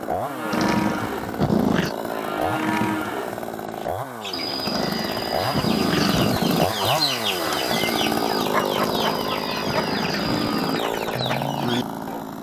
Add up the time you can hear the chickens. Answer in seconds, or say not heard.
8 s.